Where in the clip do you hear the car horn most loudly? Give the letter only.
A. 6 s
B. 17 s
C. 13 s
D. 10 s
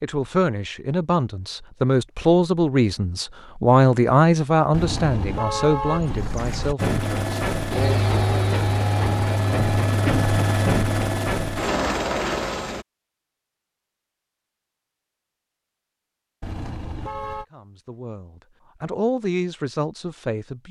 A.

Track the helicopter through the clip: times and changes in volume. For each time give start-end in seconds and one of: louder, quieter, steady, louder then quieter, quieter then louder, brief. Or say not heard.
6.8-12.8 steady.